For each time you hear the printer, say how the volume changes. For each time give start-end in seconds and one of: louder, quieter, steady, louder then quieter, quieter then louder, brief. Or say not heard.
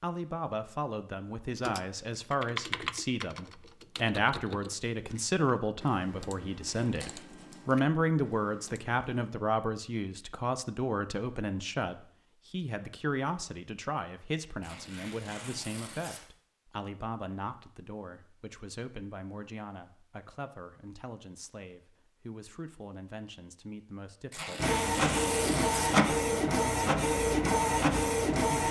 24.6-28.6 steady.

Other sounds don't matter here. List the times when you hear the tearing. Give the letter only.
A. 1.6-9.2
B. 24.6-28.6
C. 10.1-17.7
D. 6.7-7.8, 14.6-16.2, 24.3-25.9
D.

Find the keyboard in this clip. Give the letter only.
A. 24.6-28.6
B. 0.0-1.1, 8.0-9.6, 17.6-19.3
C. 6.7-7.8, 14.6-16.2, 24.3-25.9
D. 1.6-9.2
D.